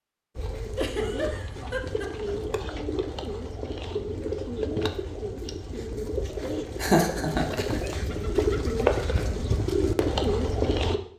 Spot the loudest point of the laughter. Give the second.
7 s.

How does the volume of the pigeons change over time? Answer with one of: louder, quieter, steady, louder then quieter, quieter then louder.
louder.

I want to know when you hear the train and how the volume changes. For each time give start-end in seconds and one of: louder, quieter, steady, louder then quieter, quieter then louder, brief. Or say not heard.
not heard.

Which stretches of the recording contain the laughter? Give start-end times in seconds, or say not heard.
0.8-2.4, 6.8-7.8.